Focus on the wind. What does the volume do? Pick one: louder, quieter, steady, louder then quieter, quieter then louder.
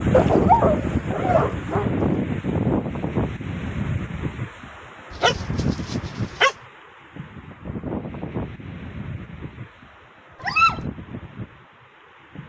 quieter.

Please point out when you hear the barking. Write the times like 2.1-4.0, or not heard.
0.1-2.0, 5.1-6.5, 10.4-10.8.